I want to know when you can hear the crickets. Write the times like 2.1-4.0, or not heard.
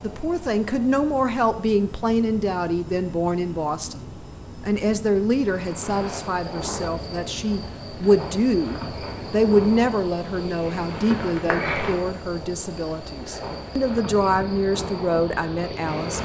5.4-16.2.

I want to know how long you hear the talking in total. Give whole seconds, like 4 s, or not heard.
16 s.